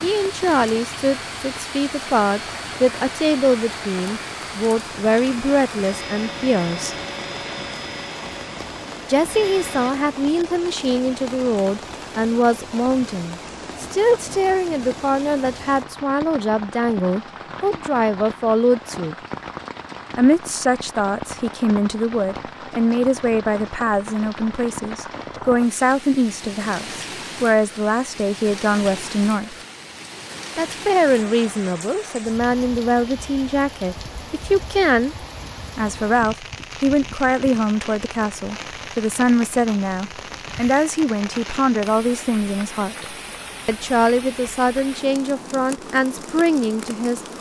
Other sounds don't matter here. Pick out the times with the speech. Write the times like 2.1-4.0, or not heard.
0.0-7.0, 9.1-19.1, 20.1-29.6, 30.6-35.1, 35.8-47.2.